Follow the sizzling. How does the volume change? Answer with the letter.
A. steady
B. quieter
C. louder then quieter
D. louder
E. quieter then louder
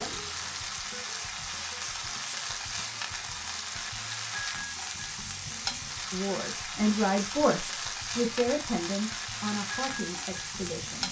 A.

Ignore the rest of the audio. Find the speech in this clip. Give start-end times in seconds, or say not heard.
6.1-11.0.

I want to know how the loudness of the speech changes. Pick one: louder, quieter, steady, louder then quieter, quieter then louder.
quieter.